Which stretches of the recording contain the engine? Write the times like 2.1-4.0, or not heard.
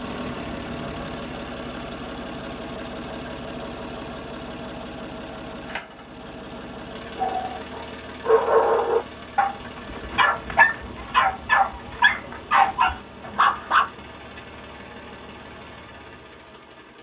0.0-16.9.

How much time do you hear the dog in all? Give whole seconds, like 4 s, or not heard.
7 s.